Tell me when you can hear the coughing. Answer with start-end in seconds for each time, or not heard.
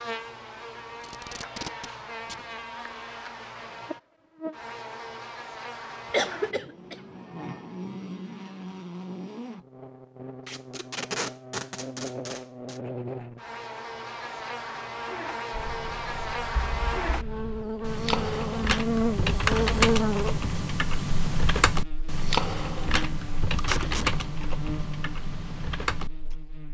6.1-7.0.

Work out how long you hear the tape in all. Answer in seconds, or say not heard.
4 s.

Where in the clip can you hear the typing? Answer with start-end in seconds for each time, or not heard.
15.5-26.4.